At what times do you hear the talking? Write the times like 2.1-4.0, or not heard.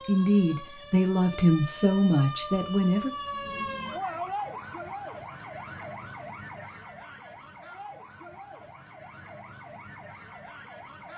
0.1-3.1.